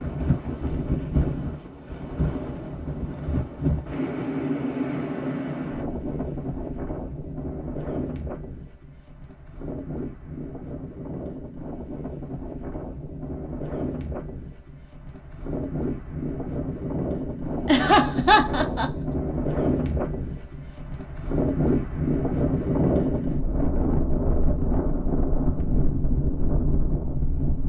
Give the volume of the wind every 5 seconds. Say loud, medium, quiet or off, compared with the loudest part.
loud, medium, medium, loud, loud, loud.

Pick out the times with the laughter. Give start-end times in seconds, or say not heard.
17.6-18.9.